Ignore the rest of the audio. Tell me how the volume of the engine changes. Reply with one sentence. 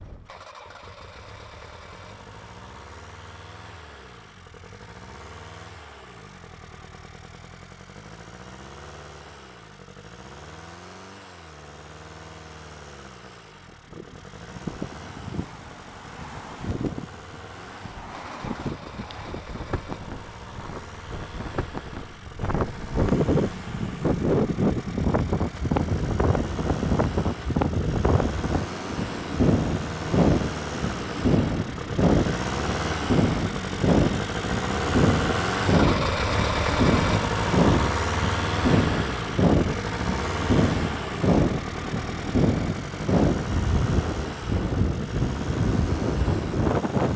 The volume of the engine goes up.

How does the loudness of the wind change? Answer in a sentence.
The volume of the wind goes up.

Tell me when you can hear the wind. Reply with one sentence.
You can hear the wind from 13.7 to 47.1 s.